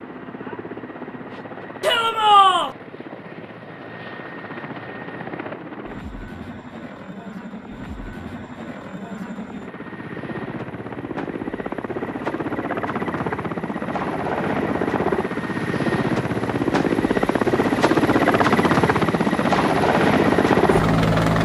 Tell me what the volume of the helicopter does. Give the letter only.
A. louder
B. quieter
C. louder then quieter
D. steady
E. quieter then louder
A.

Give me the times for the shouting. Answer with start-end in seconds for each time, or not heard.
1.8-2.7.